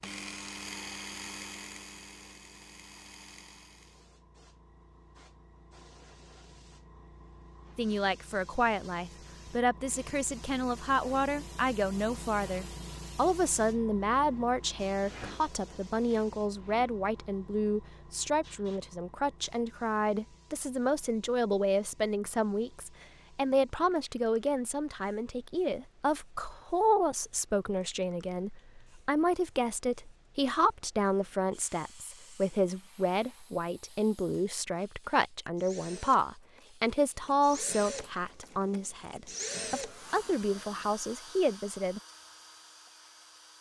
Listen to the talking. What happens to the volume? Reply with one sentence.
The volume of the talking stays about the same.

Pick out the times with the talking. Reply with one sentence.
You can hear the talking from 7.8 to 42.0 s.